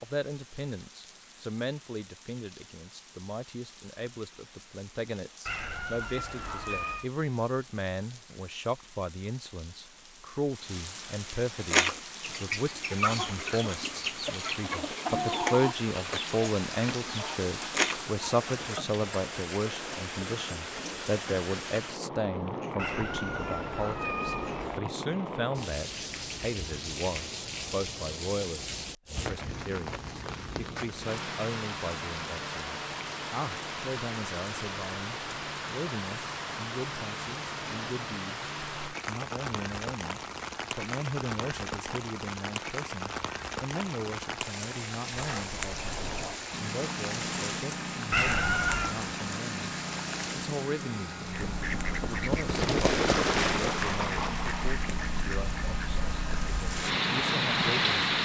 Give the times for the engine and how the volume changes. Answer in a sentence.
You can hear the engine from 46.5 to 58.2 s, at a steady volume.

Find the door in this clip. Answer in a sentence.
You can hear the door from 45.1 to 46.4 s.